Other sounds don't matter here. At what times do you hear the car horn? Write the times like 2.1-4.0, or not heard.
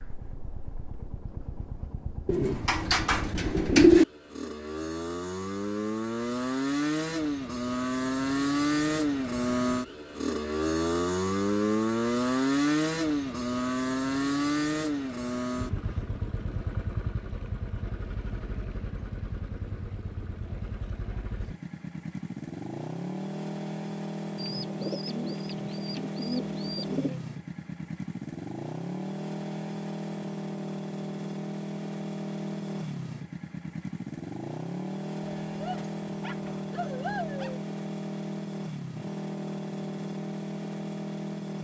not heard.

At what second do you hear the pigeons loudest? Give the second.
4 s.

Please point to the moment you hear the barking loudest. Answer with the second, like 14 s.
37 s.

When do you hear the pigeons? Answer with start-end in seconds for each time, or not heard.
2.2-4.0, 24.4-27.2.